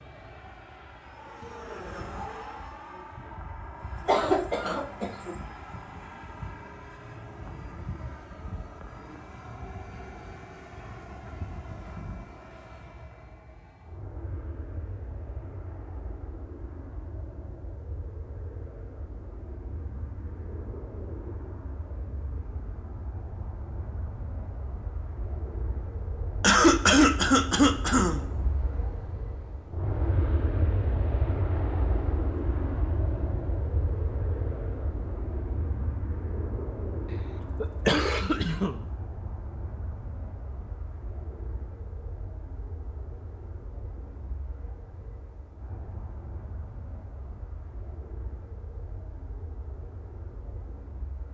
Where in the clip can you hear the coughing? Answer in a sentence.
You can hear the coughing from 4.0 to 5.3 s, from 26.4 to 28.2 s and from 37.1 to 38.8 s.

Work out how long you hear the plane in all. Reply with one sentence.
The plane can be heard for 51 seconds in total.